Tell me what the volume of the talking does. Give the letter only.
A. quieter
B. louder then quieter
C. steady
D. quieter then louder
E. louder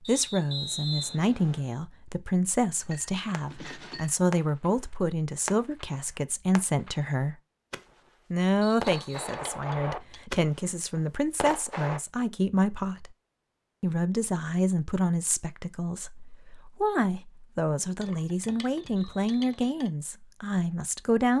C.